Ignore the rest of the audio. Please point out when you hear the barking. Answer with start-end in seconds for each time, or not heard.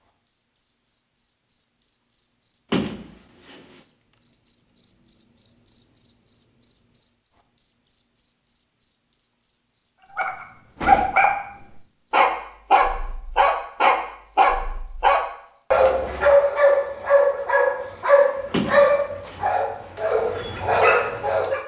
10.2-21.6.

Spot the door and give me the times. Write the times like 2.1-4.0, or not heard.
2.7-3.6, 10.8-11.3, 18.5-19.4.